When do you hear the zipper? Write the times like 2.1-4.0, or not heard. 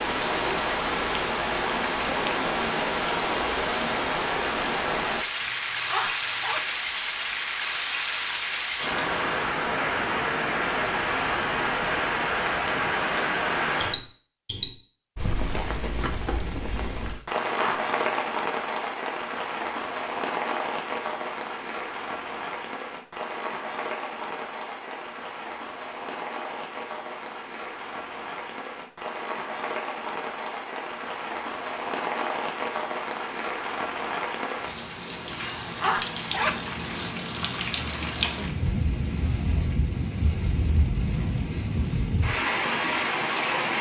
5.4-6.6, 17.1-18.2, 35.3-36.8.